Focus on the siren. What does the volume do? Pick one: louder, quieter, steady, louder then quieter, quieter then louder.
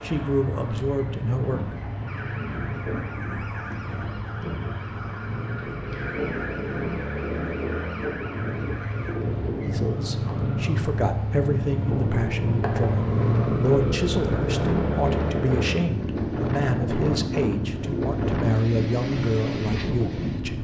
steady.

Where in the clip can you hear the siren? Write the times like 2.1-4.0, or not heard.
2.0-9.2.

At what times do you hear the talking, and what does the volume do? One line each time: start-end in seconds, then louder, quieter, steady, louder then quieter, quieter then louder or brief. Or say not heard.
0.0-1.8 brief
9.6-20.5 steady.